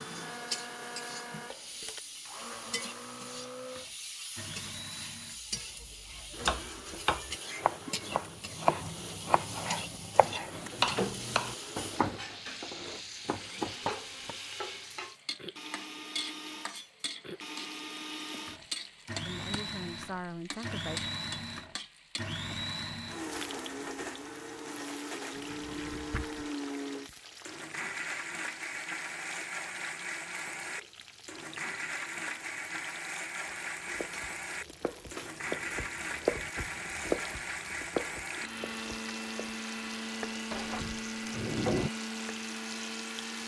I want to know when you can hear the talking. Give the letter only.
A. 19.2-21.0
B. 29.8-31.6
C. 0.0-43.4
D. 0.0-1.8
A.